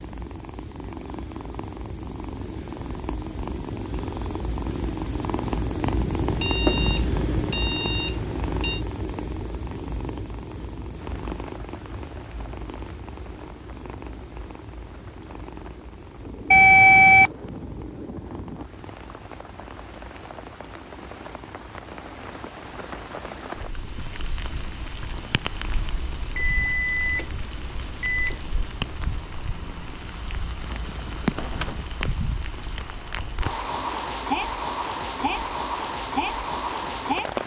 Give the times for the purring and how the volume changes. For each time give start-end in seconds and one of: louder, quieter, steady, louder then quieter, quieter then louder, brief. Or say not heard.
0.0-37.4 quieter.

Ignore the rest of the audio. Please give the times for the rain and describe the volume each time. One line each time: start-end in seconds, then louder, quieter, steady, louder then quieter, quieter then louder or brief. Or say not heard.
10.9-37.4 louder.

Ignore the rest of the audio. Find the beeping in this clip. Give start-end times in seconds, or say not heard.
6.2-8.8, 16.5-17.3, 26.3-28.6.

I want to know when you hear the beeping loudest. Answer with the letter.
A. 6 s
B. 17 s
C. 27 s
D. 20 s
B.